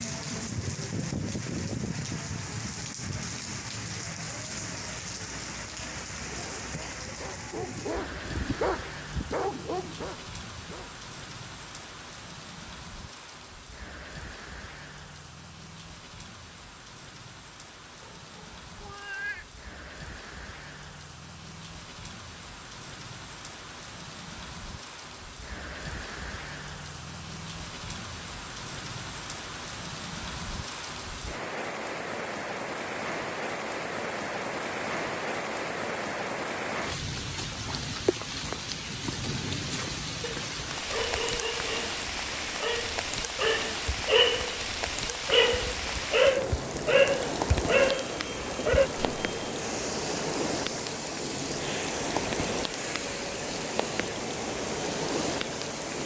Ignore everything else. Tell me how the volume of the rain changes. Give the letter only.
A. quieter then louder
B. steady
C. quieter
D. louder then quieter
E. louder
A.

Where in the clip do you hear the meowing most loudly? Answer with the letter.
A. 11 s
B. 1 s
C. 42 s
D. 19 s
D.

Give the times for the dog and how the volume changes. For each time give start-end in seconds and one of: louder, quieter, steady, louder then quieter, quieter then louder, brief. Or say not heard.
6.2-11.0 louder then quieter
40.2-48.9 louder.